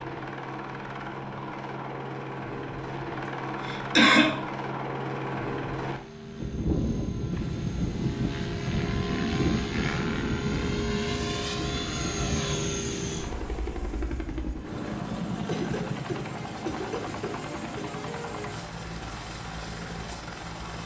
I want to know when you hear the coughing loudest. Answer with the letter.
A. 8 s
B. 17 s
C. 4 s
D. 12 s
C.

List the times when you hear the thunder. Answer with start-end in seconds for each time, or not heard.
7.4-10.7.